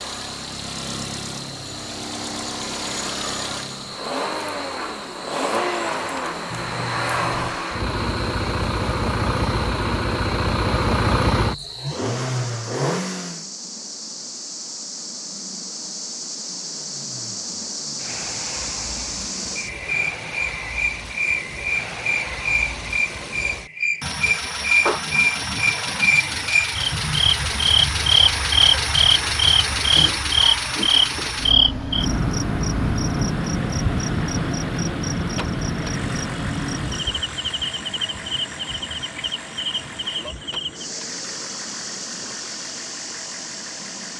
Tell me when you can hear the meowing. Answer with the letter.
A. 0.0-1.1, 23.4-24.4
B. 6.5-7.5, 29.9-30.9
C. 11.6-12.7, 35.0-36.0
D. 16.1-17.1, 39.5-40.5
B.